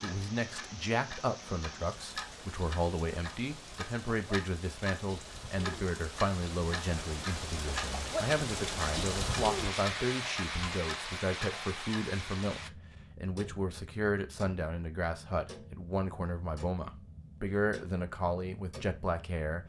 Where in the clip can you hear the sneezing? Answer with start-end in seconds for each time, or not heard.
not heard.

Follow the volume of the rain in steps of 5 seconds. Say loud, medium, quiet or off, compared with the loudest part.
medium, loud, loud, off.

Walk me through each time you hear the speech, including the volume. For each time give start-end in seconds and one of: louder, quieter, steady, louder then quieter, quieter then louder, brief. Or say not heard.
0.0-19.6 steady.